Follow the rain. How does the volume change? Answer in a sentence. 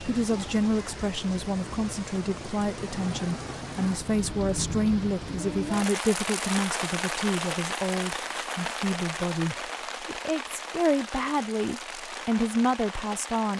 The loudness of the rain goes up, then down.